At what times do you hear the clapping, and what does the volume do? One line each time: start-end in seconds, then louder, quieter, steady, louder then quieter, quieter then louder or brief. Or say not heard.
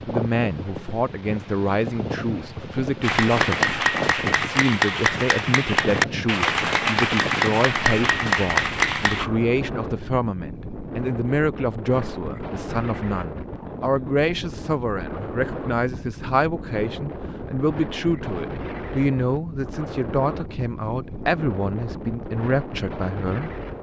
3.0-9.3 steady.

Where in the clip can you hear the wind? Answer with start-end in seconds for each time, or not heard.
0.0-23.7.